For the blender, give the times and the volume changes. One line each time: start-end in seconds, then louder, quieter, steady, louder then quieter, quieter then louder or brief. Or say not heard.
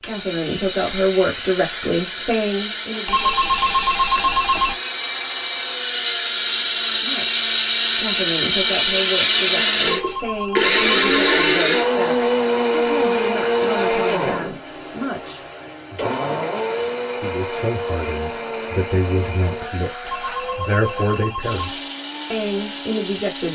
0.0-23.5 louder then quieter.